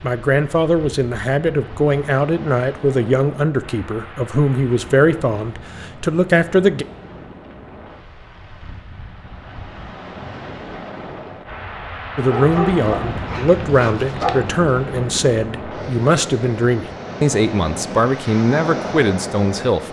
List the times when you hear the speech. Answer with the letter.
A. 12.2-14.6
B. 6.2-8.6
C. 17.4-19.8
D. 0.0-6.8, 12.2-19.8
D.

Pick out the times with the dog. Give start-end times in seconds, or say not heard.
12.2-14.6.